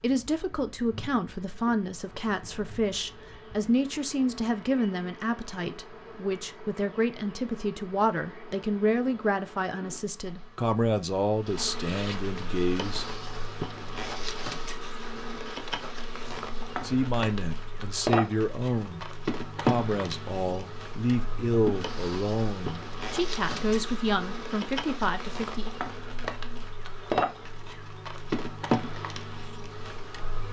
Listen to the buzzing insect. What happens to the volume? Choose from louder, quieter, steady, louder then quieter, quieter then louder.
louder.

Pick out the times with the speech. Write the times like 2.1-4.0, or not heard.
0.0-13.1, 16.8-25.7.